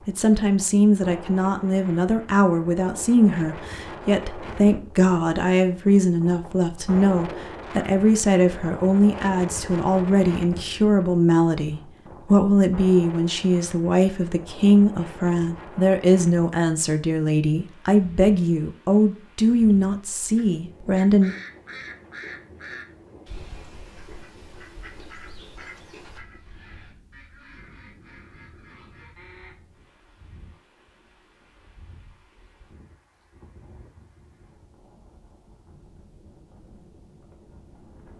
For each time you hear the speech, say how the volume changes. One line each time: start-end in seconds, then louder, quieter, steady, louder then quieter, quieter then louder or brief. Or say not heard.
0.1-21.4 steady.